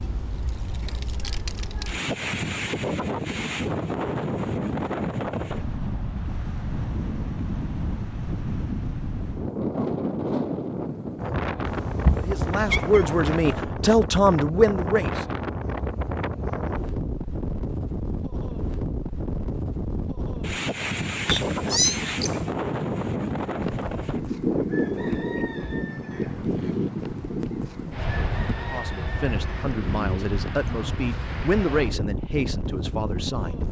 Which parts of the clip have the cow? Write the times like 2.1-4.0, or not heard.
not heard.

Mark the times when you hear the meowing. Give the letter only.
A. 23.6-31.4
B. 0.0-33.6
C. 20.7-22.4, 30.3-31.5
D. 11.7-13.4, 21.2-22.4
D.